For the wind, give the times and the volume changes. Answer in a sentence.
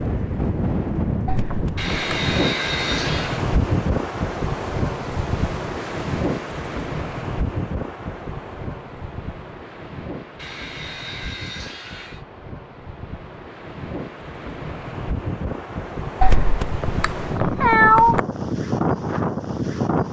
You can hear the wind from 0.0 to 20.0 s, getting quieter then louder.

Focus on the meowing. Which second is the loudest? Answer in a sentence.
The volume of the meowing peaks at 18 seconds.